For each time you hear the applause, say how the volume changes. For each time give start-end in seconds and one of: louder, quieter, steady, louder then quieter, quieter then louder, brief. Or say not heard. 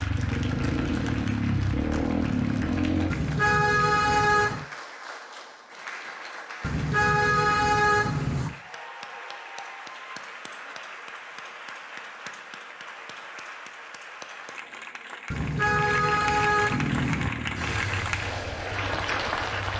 0.0-19.7 louder.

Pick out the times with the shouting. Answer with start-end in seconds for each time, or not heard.
not heard.